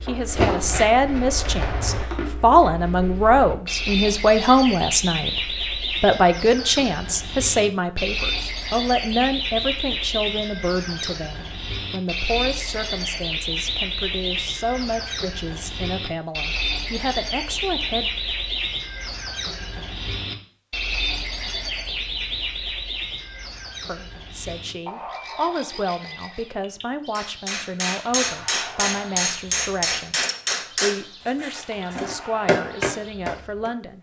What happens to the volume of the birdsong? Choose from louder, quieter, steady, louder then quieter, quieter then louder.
quieter.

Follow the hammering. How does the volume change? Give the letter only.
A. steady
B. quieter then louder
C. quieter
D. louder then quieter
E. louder
B.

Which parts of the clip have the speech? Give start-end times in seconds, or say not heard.
0.0-18.1, 23.9-33.9.